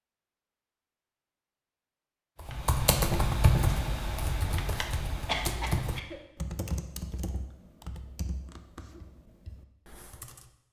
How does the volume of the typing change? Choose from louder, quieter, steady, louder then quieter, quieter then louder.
quieter.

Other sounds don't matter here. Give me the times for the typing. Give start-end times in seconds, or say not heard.
2.4-10.5.